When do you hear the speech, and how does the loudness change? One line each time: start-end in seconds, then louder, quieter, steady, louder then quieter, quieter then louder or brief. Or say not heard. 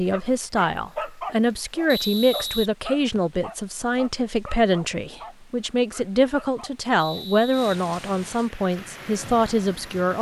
0.0-10.1 steady.